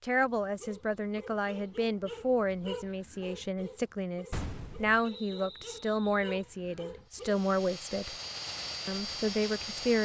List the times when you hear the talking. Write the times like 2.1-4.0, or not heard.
0.0-8.2, 8.8-9.9.